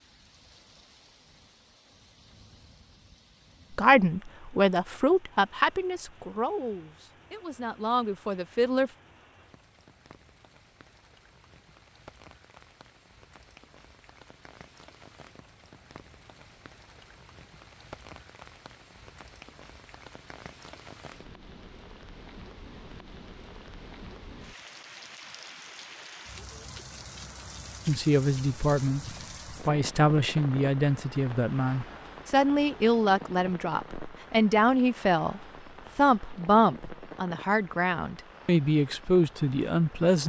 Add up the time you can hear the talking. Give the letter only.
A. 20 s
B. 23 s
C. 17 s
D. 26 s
C.